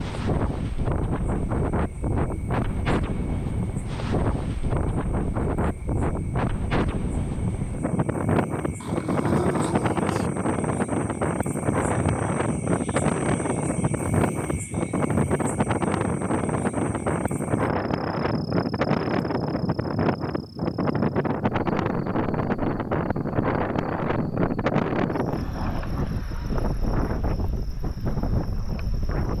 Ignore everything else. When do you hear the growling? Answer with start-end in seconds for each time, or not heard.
8.8-10.3.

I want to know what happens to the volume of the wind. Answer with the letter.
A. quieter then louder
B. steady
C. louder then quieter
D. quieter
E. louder
B.